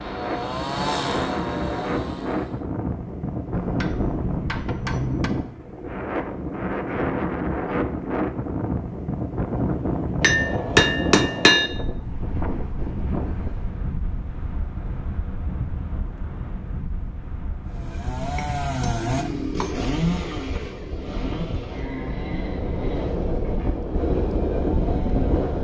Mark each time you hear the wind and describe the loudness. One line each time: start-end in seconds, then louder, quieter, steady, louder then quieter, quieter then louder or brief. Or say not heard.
0.0-25.5 quieter then louder.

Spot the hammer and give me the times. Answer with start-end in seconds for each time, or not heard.
3.5-5.3, 10.2-11.7, 18.1-19.8.